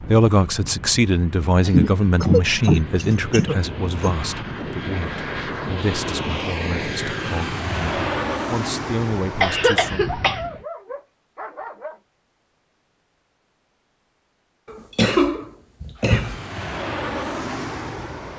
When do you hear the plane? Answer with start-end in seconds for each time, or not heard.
0.0-10.7, 16.1-18.3.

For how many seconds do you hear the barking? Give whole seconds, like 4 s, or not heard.
2 s.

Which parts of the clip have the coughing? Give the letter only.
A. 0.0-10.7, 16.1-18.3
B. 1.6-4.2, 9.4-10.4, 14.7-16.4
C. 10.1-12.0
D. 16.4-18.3
B.